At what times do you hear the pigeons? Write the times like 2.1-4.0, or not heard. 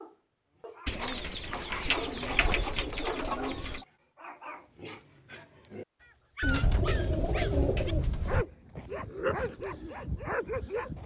0.8-3.8, 6.4-8.4.